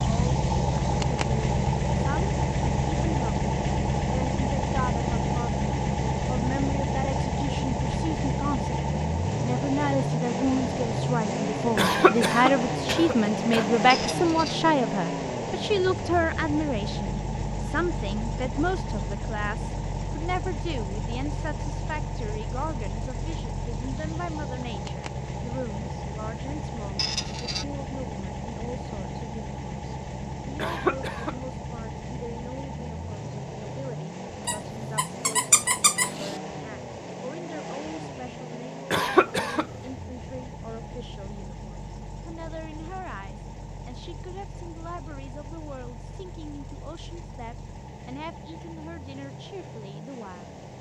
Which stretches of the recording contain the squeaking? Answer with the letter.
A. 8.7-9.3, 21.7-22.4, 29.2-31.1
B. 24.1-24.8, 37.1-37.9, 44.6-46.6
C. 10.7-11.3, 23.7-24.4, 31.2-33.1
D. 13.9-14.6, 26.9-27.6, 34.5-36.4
D.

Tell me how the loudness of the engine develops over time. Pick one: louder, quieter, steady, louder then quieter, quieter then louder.
quieter.